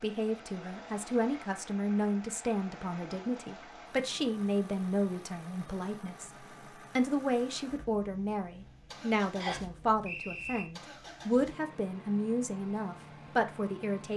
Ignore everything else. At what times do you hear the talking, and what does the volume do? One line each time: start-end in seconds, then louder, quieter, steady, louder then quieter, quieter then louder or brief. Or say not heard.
0.0-14.1 steady.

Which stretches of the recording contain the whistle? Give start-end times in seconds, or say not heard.
9.4-10.7.